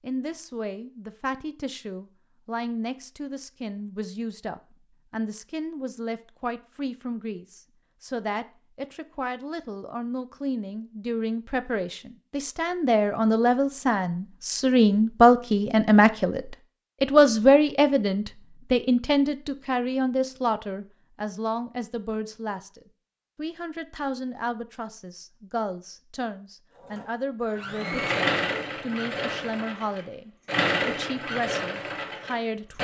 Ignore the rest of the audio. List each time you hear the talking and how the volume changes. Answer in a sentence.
The talking can be heard from 0.0 to 32.7 s, getting louder then quieter.